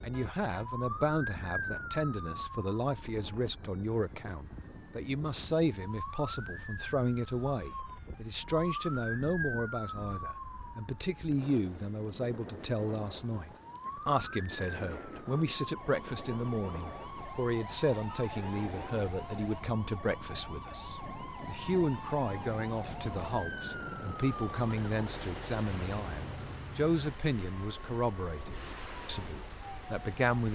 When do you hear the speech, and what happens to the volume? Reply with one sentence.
You can hear the speech from 0.0 to 30.5 s, at a steady volume.